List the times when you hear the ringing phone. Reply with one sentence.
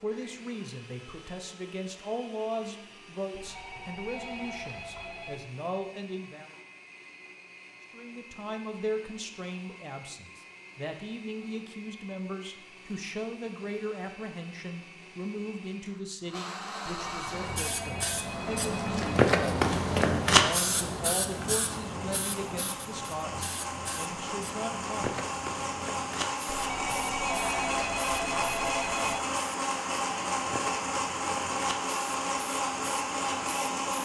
The ringing phone can be heard from 3.3 to 5.4 s, from 17.1 to 19.1 s and from 26.5 to 29.2 s.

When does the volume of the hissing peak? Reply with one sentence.
The volume of the hissing peaks at 20 seconds.